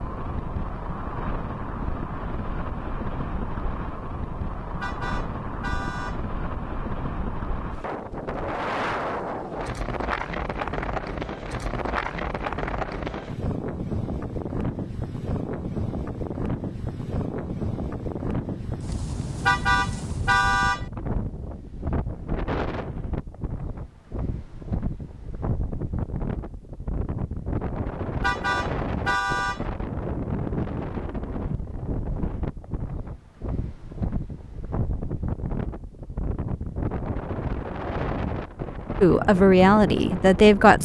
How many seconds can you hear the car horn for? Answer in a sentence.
You can hear the car horn for 4 seconds altogether.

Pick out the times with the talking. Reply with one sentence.
You can hear the talking from 39.0 to 40.7 s.